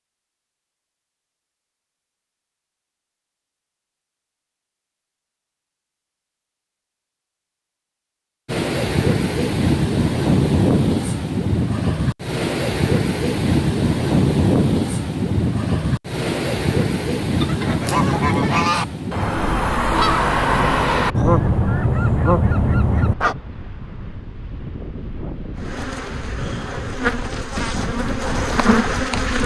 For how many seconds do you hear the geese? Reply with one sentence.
The geese can be heard for 6 seconds in total.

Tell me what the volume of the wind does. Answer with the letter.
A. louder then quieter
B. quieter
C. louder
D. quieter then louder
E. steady
B.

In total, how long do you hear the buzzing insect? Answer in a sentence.
You can hear the buzzing insect for 4 seconds altogether.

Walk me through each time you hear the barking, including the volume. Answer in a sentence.
You can't hear the barking here.